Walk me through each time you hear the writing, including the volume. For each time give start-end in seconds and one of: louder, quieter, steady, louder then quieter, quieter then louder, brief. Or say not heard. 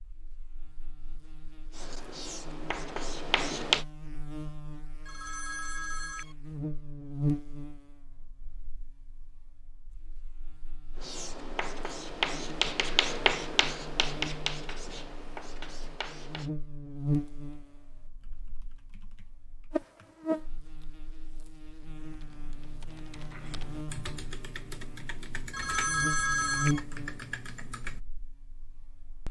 1.7-3.9 brief
10.9-16.5 quieter.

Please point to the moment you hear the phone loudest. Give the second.
26 s.